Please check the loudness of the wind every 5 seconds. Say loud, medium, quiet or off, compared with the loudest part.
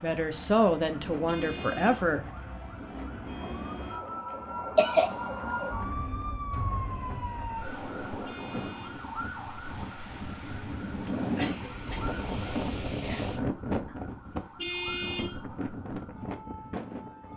medium, medium, loud, medium.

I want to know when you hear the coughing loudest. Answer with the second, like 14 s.
5 s.